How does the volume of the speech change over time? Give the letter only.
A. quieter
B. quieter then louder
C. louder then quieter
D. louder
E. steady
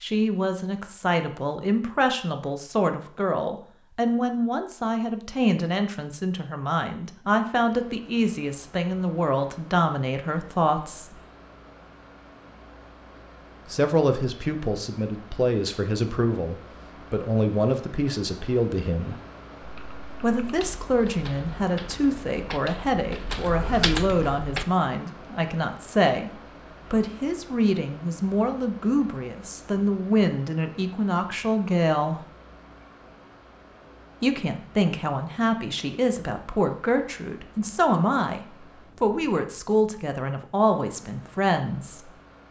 E.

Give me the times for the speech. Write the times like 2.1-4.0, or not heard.
0.0-11.2, 13.7-19.2, 20.2-32.2, 34.2-42.1.